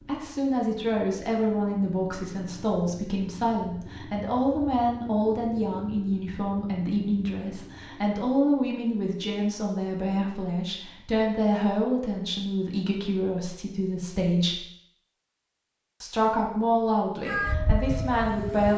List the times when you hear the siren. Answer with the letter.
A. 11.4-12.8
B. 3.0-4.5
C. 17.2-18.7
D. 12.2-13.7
C.